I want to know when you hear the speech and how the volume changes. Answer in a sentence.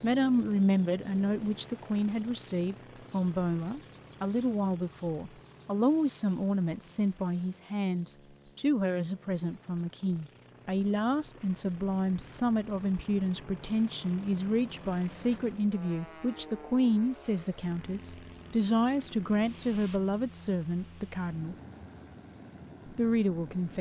The speech can be heard from 0.0 to 21.6 s, at a steady volume; and briefly from 22.9 to 23.7 s.